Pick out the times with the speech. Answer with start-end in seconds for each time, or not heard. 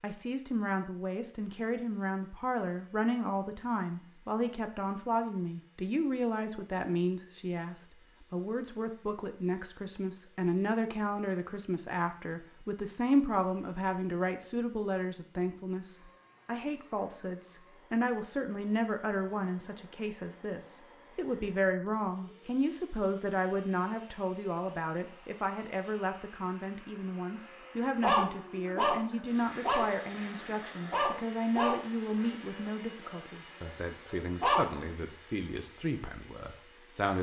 0.0-37.1.